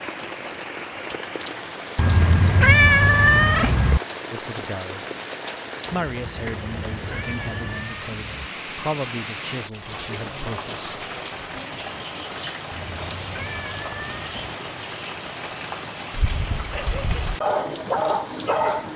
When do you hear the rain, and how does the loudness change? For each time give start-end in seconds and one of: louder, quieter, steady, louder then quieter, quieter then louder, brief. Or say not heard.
0.0-18.9 steady.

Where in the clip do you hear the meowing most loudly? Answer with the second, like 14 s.
3 s.